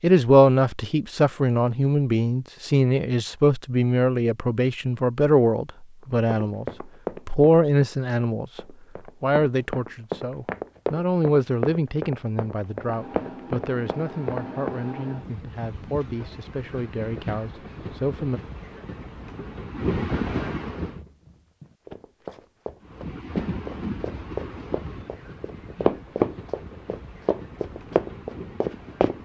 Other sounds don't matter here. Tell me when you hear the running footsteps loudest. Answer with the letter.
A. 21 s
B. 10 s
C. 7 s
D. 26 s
D.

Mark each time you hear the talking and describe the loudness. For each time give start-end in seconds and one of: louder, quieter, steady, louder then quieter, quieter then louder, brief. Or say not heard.
0.0-6.7 steady
7.2-18.4 quieter.